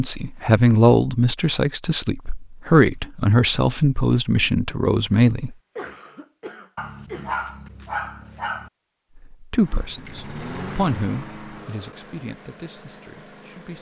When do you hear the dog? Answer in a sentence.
You can hear the dog from 6.8 to 8.7 s.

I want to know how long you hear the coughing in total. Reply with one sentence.
You can hear the coughing for 2 seconds altogether.